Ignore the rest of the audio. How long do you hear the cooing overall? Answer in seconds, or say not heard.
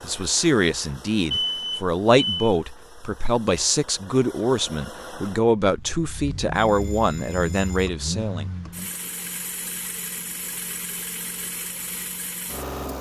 not heard.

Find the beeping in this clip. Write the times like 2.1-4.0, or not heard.
1.3-2.5, 6.5-7.9.